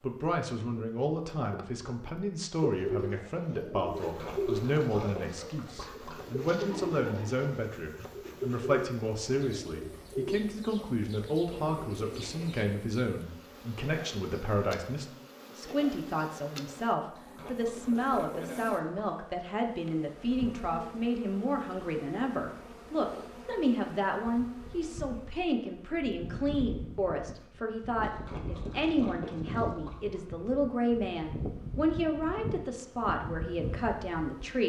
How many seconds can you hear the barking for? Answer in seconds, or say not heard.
not heard.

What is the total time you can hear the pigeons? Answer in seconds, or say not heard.
10 s.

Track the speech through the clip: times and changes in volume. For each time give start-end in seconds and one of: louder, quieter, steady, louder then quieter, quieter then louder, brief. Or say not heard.
0.0-34.6 steady.